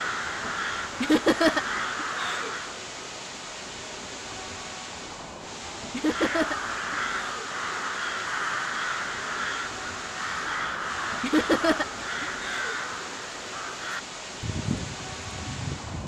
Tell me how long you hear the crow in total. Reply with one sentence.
The crow can be heard for 13 seconds in total.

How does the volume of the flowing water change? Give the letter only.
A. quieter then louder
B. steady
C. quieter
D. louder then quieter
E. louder
B.